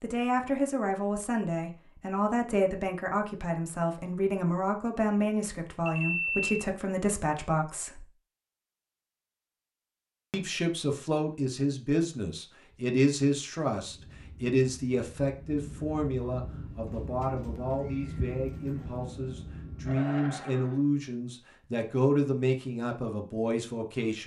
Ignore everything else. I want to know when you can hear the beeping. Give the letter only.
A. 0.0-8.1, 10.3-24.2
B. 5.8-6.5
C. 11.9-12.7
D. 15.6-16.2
B.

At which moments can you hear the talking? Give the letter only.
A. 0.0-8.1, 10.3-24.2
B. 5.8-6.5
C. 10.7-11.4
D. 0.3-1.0
A.